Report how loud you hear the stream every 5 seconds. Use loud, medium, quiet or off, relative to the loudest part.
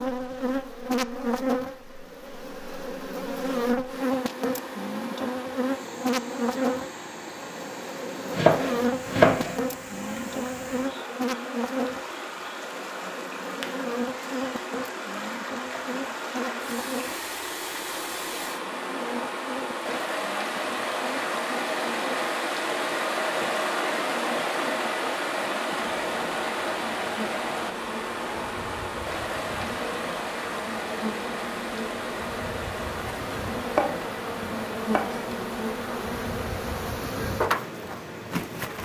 quiet, quiet, medium, medium, loud, loud, medium, medium.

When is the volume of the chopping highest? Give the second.
9 s.